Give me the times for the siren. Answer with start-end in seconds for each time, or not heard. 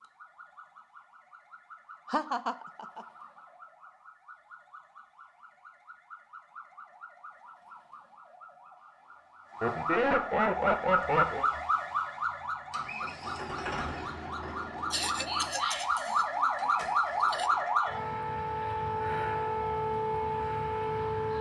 0.0-21.3.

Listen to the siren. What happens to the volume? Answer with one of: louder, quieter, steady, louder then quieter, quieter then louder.
louder.